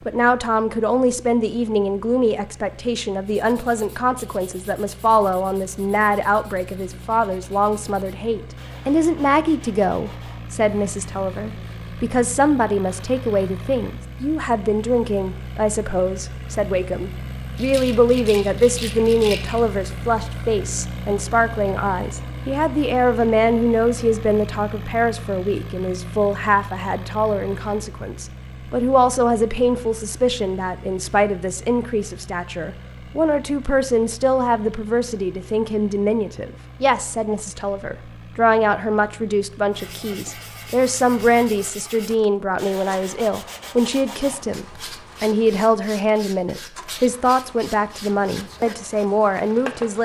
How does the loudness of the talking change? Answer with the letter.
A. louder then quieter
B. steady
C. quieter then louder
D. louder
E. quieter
B.